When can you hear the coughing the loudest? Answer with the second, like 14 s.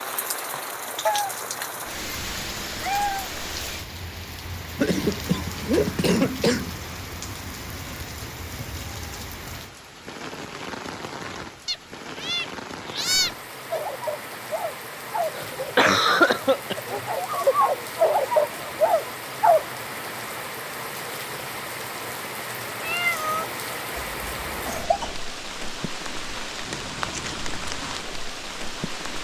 16 s.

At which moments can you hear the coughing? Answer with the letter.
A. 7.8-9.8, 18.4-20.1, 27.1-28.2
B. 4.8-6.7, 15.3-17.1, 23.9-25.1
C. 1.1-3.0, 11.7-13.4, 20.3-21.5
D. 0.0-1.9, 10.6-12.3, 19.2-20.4
B.